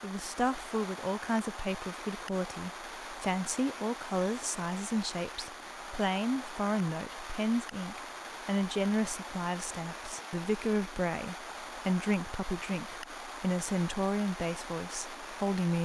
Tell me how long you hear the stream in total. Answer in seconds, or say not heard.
16 s.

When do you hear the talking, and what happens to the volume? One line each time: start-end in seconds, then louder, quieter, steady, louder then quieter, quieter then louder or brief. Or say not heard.
0.0-15.8 steady.